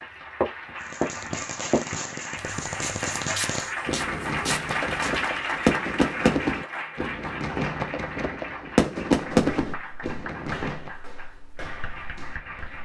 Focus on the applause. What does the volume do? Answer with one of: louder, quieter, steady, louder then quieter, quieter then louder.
louder then quieter.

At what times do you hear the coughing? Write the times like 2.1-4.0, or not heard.
not heard.